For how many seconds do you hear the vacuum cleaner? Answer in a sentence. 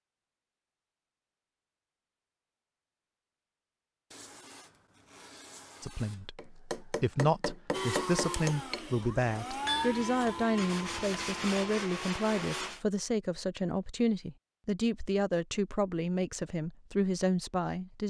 The vacuum cleaner can be heard for 5 seconds in total.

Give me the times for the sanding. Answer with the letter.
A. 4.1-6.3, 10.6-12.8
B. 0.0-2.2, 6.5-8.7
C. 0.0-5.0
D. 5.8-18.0
A.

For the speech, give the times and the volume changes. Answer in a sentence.
You can hear the speech from 5.8 to 18.0 s, at a steady volume.